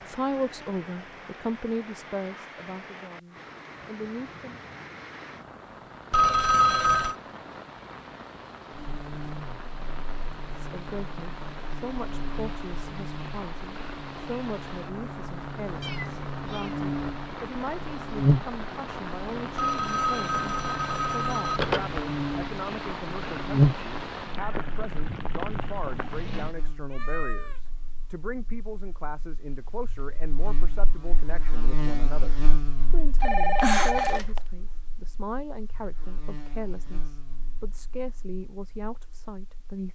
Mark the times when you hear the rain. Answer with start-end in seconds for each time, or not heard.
0.0-26.6.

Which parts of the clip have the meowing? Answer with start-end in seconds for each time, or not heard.
15.8-16.8, 26.9-27.6.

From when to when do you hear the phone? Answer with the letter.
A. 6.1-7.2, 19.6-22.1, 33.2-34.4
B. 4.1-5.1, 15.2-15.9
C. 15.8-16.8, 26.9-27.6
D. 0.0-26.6
A.